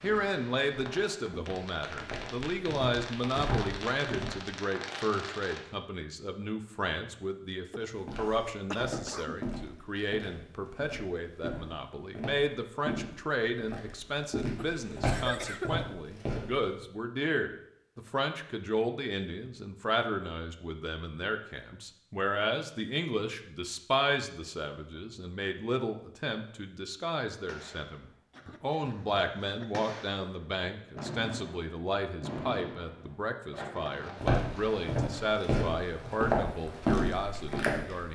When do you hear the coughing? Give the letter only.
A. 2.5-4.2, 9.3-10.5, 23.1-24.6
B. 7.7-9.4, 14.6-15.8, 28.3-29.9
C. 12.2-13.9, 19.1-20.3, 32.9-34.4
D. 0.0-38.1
B.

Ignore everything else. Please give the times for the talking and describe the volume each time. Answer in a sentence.
The talking can be heard from 0.0 to 38.1 s, at a steady volume.